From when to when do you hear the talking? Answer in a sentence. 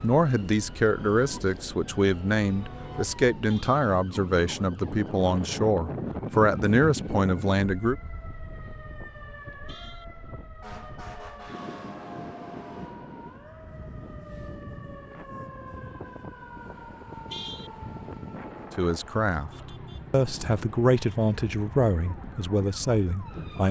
You can hear the talking from 0.0 to 8.0 s, from 18.8 to 19.5 s and from 20.1 to 23.6 s.